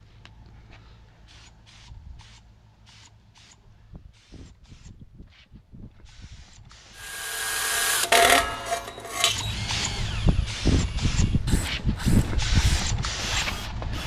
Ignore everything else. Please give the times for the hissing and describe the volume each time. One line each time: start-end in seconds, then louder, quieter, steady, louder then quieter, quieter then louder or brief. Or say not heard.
0.0-14.0 louder.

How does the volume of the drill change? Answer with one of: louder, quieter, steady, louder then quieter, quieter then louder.
quieter.